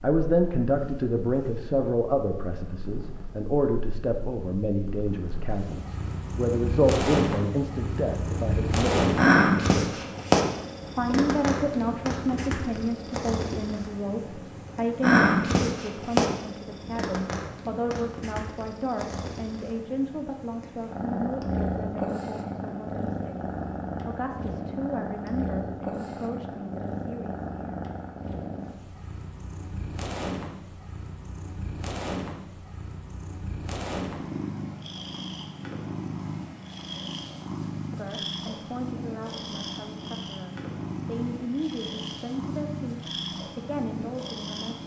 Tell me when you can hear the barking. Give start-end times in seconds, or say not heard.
not heard.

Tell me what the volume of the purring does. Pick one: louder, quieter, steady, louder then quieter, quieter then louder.
louder then quieter.